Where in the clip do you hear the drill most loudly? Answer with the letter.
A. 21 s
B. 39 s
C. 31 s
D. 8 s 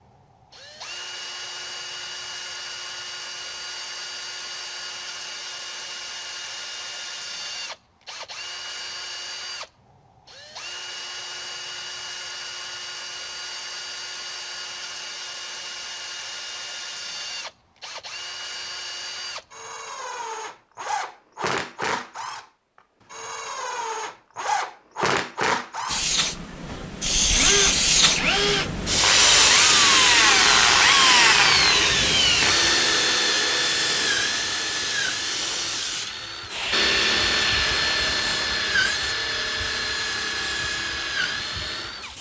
C.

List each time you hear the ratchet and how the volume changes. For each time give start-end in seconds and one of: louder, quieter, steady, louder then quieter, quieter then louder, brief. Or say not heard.
not heard.